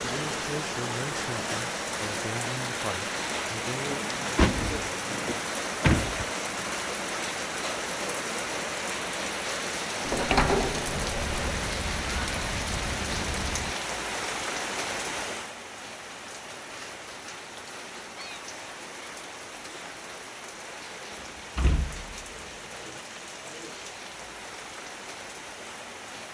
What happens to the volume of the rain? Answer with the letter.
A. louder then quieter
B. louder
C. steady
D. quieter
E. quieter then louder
D.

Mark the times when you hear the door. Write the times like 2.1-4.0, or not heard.
3.9-6.2, 10.1-11.6, 21.1-23.0.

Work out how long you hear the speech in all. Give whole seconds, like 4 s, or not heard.
4 s.